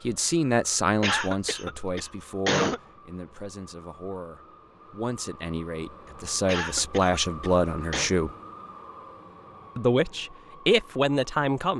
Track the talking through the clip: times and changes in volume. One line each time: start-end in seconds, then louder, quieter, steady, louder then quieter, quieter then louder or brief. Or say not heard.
0.0-8.3 quieter then louder
9.8-11.7 brief.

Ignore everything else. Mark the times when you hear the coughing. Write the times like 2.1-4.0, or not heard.
1.0-2.8, 6.5-8.1.